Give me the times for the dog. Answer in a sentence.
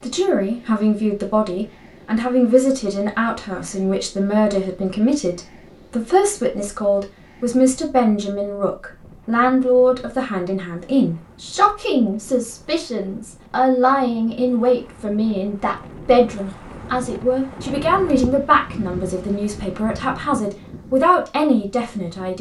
The dog can't be heard in this clip.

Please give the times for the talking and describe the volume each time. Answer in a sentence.
You can hear the talking from 0.0 to 22.3 s, at a steady volume.